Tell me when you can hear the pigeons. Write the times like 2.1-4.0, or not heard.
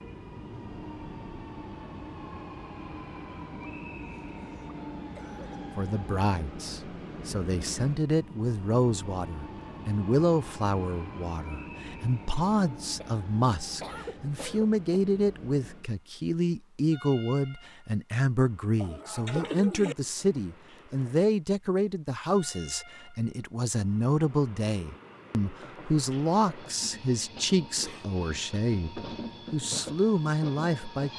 18.8-19.9.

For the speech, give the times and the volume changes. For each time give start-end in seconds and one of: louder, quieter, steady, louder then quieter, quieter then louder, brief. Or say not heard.
5.8-31.1 steady.